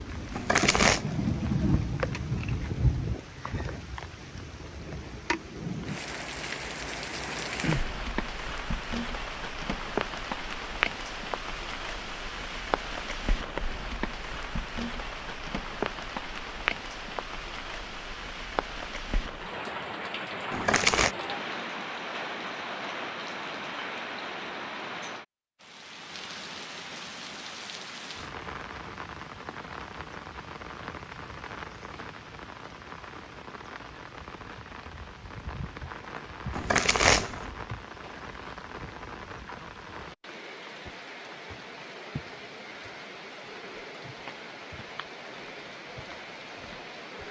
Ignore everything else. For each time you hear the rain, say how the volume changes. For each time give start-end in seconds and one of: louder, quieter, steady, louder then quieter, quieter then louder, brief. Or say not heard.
0.0-47.2 quieter.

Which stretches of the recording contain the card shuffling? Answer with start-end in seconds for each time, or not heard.
0.3-1.1, 20.5-21.1, 36.5-37.5.